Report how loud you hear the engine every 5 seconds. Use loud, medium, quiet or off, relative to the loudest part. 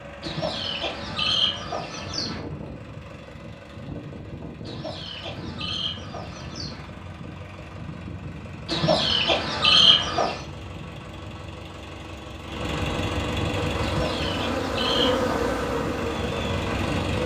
medium, medium, loud, loud.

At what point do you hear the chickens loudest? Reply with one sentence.
The volume of the chickens peaks at 10 seconds.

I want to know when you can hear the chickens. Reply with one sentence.
You can hear the chickens from 0.2 to 2.4 s, from 4.7 to 6.9 s, from 8.7 to 10.4 s and from 13.8 to 15.2 s.